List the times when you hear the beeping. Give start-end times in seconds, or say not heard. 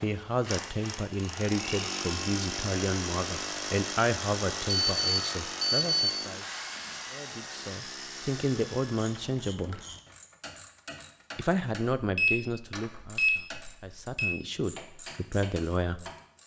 4.7-6.2, 11.9-14.3.